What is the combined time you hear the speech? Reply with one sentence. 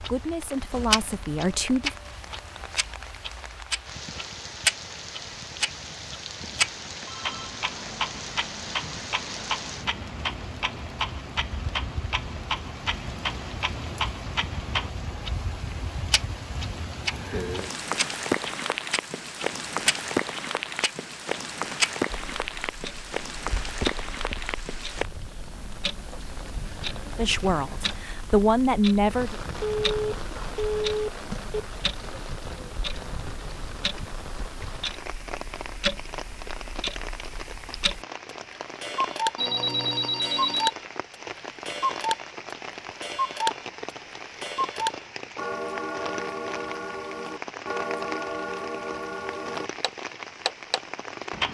You can hear the speech for 4 seconds altogether.